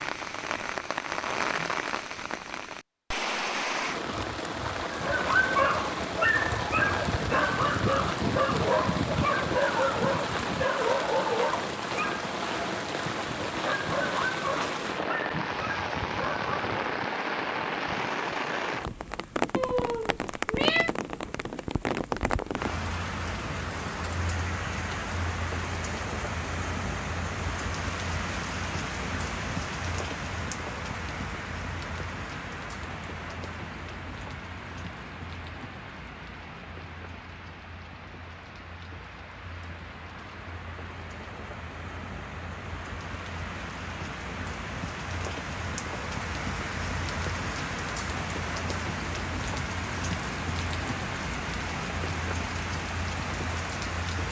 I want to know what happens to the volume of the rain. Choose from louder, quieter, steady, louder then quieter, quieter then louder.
quieter then louder.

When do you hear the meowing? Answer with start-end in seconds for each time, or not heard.
19.6-20.9.